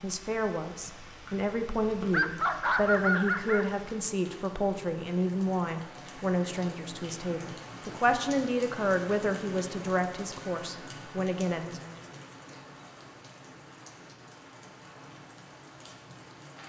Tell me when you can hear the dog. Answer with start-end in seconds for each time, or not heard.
2.1-3.7.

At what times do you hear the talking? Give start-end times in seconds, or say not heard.
0.0-11.9.